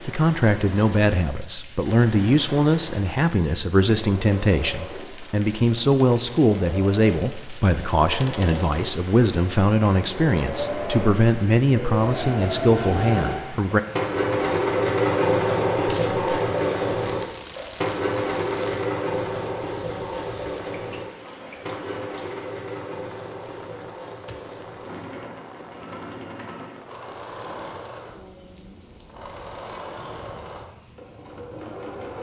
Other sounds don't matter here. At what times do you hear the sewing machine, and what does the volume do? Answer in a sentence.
You can hear the sewing machine from 0.0 to 32.1 s, getting louder then quieter.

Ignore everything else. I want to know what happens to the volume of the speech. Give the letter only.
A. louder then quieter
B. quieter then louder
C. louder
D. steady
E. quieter
D.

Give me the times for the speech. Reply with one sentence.
You can hear the speech from 0.1 to 13.8 s.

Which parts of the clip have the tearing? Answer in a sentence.
You can't hear the tearing here.